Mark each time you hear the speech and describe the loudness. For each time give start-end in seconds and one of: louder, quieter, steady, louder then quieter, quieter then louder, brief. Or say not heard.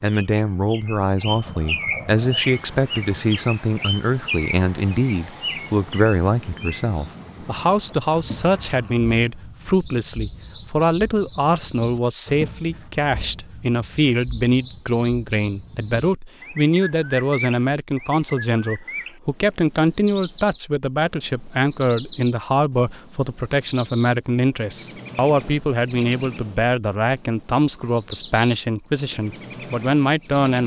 0.0-30.6 steady.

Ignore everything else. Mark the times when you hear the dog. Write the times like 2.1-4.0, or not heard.
not heard.